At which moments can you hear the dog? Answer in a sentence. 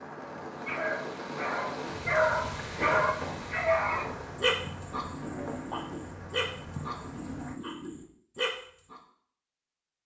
The dog can be heard from 0.7 to 9.0 s.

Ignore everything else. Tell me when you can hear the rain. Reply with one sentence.
You can hear the rain from 0.0 to 7.5 s.